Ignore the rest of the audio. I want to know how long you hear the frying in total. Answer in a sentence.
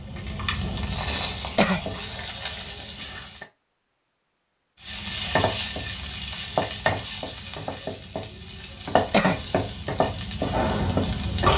The frying can be heard for 10 seconds in total.